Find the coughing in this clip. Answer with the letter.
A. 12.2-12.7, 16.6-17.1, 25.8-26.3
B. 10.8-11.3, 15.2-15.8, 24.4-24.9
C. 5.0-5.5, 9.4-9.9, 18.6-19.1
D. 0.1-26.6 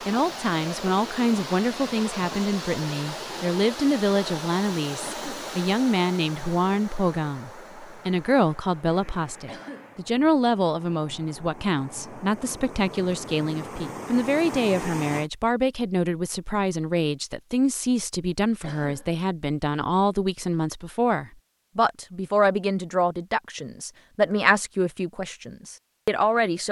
C.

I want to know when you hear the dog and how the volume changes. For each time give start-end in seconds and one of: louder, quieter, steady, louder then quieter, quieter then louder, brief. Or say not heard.
not heard.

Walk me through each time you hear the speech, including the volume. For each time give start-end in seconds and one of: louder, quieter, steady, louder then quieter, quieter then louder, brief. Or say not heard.
0.1-26.6 steady.